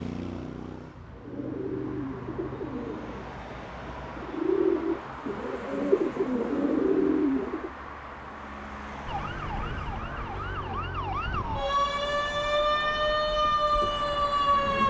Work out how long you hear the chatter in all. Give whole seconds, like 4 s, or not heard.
not heard.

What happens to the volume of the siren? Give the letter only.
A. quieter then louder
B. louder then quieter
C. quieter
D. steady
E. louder
E.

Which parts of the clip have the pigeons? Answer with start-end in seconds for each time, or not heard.
1.1-7.7.